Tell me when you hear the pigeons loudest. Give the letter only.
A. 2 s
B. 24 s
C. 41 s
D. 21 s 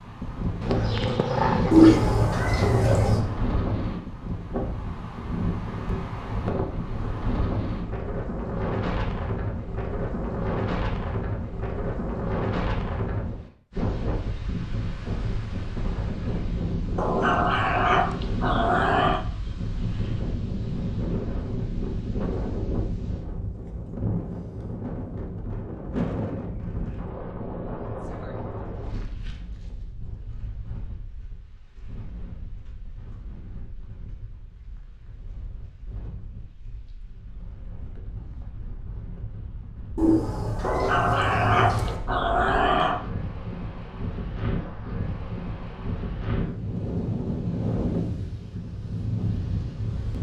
A.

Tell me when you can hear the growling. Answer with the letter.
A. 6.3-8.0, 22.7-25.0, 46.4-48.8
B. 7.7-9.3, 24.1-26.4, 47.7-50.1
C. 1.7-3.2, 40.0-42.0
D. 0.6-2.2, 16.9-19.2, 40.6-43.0
D.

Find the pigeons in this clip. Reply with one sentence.
The pigeons can be heard from 1.7 to 3.2 s and from 40.0 to 42.0 s.